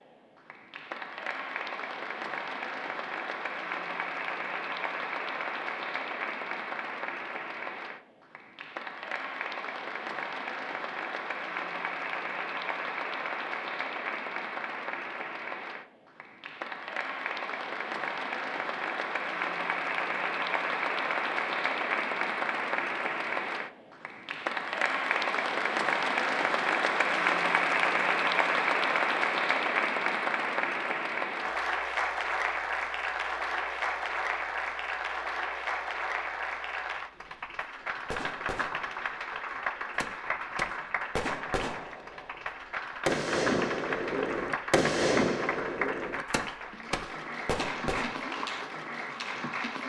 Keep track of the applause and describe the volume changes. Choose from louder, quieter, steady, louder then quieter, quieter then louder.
louder then quieter.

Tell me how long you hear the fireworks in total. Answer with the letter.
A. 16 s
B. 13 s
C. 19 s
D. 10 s
D.